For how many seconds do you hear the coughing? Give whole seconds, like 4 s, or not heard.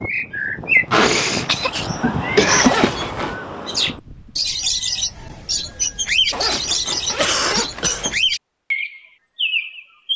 3 s.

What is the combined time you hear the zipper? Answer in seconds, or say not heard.
3 s.